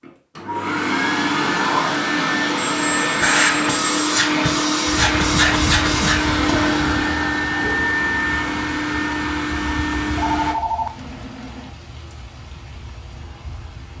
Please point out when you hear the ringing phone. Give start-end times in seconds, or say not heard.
2.5-4.0, 10.1-11.7.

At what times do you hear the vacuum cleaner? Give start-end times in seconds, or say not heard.
0.0-10.6.